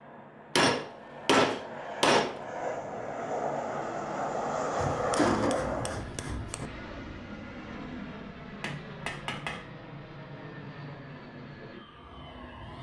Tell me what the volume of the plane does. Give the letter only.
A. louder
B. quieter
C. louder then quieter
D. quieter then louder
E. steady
C.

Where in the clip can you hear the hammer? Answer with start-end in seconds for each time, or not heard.
0.6-2.4, 4.8-6.7, 8.6-9.7.